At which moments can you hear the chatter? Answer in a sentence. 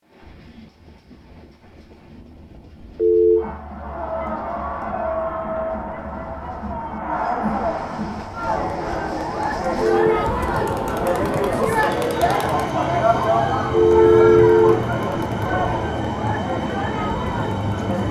You can hear the chatter from 3.4 to 18.0 s.